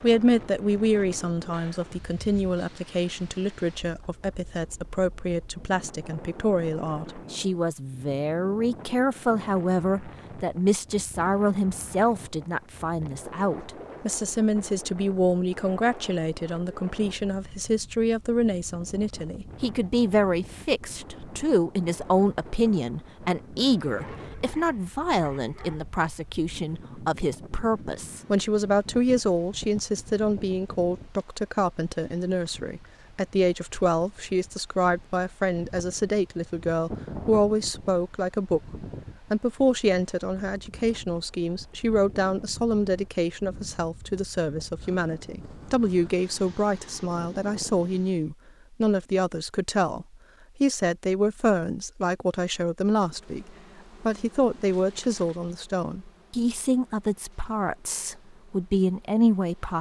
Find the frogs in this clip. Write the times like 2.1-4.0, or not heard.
not heard.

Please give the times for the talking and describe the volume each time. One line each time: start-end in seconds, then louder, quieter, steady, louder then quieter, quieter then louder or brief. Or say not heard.
0.0-59.7 steady.